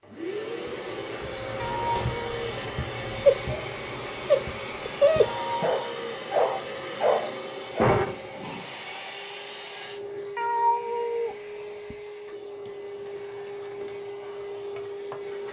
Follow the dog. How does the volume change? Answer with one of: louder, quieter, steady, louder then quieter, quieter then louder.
louder.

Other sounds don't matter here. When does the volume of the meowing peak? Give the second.
11 s.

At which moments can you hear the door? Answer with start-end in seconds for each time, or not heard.
7.8-8.6.